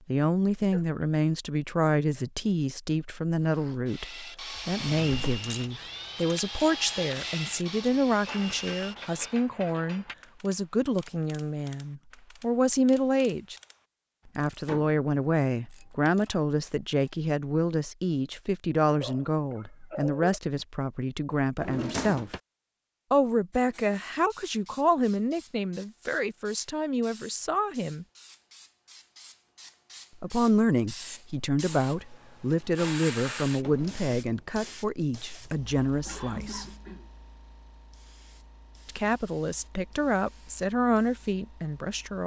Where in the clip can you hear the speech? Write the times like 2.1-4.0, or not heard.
0.1-13.6, 14.3-22.3, 23.1-28.1, 30.2-36.6, 38.9-42.2.